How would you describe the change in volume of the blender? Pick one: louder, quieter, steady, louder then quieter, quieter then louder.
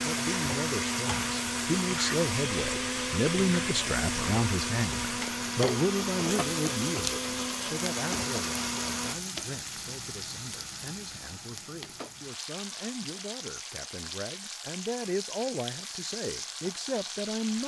steady.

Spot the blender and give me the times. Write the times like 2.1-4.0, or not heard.
0.0-9.2.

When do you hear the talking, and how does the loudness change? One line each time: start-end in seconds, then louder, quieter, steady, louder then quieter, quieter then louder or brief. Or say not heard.
0.0-17.6 quieter then louder.